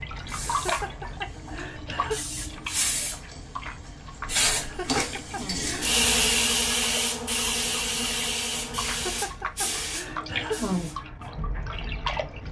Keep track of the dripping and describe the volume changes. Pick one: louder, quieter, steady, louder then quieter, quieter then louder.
quieter then louder.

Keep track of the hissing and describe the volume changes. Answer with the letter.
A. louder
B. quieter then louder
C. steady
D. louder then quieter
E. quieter
D.